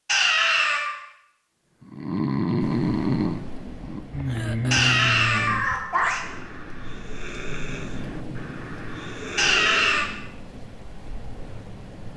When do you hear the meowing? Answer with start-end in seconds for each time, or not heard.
0.1-0.9, 4.7-6.2, 9.3-10.1.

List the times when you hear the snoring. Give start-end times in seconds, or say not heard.
1.8-10.2.